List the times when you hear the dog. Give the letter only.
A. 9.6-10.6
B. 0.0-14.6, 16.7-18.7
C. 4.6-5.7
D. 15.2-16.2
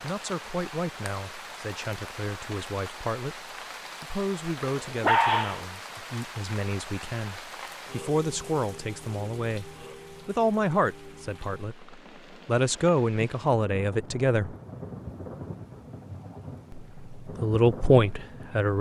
C.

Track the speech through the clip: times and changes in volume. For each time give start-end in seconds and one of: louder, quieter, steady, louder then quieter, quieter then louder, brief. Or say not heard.
0.0-14.6 louder
16.7-18.7 brief.